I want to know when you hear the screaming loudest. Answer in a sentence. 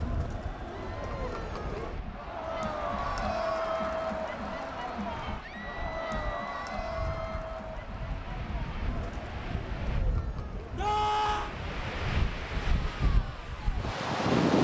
The volume of the screaming peaks at 11 seconds.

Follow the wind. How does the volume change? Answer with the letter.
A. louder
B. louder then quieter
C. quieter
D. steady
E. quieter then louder
A.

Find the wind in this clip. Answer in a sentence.
You can hear the wind from 0.0 to 14.5 s.